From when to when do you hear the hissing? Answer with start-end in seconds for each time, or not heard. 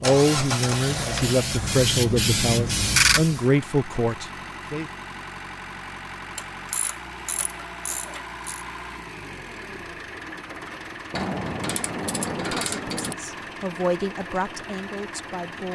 0.1-3.4.